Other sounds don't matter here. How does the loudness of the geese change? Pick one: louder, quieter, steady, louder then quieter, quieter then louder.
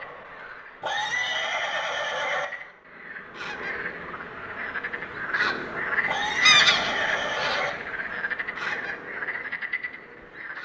louder then quieter.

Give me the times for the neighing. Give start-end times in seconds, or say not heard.
0.8-2.5, 6.0-7.7.